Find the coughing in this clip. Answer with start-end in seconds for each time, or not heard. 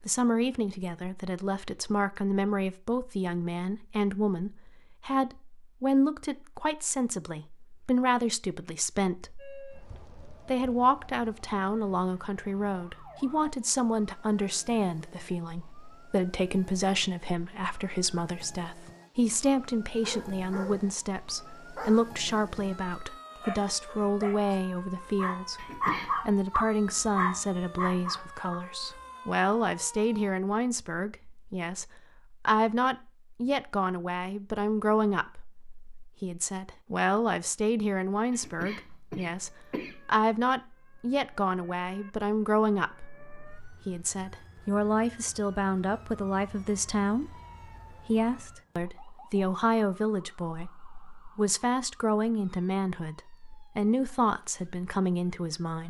25.6-26.1, 38.3-40.0.